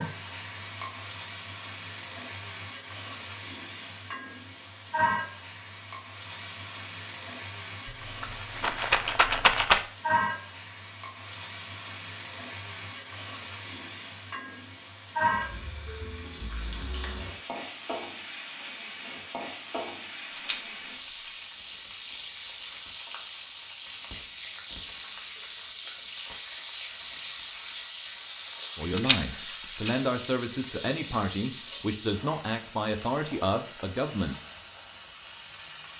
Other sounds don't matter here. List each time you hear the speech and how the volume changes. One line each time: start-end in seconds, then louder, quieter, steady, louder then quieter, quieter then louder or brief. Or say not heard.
28.8-34.4 steady.